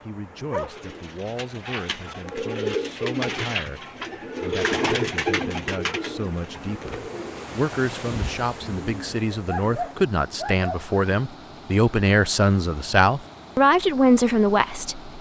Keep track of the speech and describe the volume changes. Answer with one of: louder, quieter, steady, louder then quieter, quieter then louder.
louder.